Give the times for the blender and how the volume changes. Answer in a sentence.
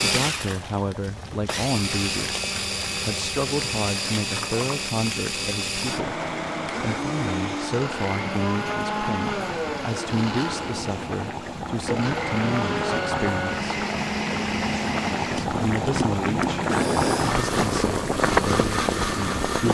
The blender can be heard from 0.0 to 19.6 s, at a steady volume.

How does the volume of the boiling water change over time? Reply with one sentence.
The loudness of the boiling water goes up.